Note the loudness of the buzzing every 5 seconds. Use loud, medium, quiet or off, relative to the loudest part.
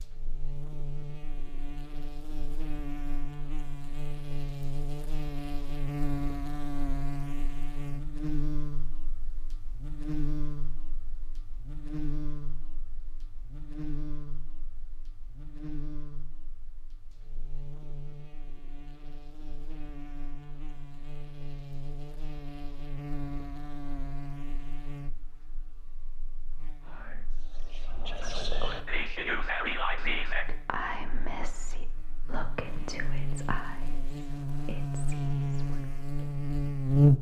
quiet, quiet, quiet, quiet, quiet, quiet, quiet, loud.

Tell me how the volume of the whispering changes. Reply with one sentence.
The loudness of the whispering goes up, then down.